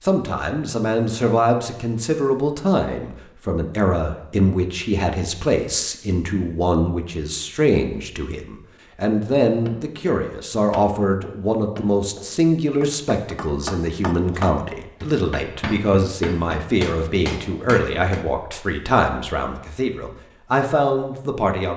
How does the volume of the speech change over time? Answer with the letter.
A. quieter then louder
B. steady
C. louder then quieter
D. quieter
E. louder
B.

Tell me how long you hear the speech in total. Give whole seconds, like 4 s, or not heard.
22 s.